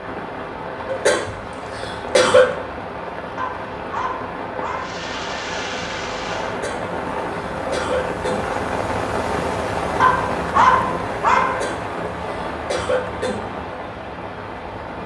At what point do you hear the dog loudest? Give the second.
11 s.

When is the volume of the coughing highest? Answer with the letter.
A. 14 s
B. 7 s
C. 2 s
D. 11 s
C.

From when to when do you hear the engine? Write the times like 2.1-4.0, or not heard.
4.8-6.6.